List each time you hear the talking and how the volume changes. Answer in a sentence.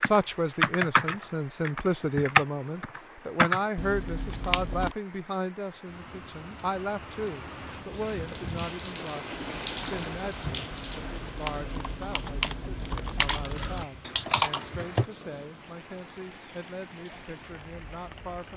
The talking can be heard from 0.0 to 18.5 s, getting quieter.